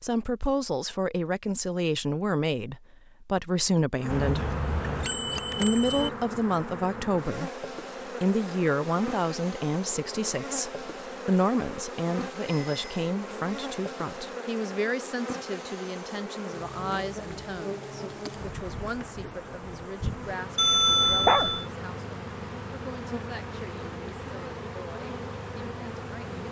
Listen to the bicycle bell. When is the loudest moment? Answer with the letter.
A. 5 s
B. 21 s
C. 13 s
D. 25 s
B.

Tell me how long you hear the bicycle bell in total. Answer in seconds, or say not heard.
4 s.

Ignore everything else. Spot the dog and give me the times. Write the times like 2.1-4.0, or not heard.
20.9-21.6.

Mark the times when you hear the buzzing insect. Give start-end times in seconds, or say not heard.
4.0-26.4.